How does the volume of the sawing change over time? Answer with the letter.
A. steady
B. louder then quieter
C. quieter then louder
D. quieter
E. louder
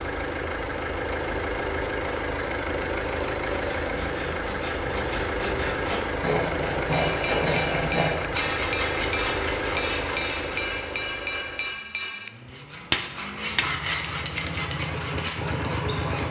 B.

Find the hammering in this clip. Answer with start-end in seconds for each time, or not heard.
6.8-13.8.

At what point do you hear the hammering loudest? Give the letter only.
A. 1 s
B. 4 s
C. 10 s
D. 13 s
D.